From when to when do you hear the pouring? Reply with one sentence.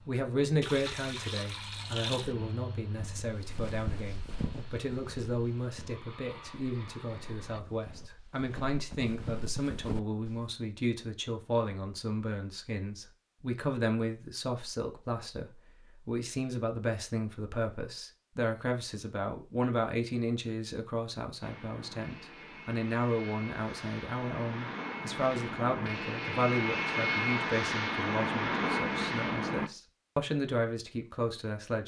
You can hear the pouring from 0.6 to 2.4 s.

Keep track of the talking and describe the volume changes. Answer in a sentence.
The loudness of the talking stays about the same.